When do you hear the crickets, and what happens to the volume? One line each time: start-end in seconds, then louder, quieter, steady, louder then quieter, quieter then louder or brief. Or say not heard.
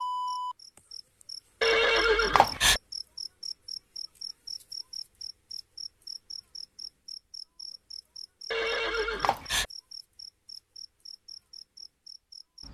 0.0-12.6 quieter.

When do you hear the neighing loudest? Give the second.
2 s.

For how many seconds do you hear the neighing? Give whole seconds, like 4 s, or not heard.
2 s.